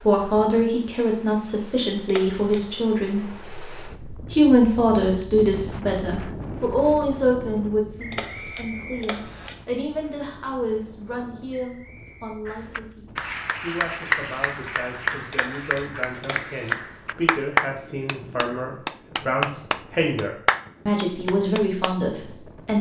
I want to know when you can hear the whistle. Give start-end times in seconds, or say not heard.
8.0-9.5, 11.5-12.4.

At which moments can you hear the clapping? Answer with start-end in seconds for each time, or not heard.
12.4-21.9.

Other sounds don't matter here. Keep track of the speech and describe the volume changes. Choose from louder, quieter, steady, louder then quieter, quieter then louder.
quieter then louder.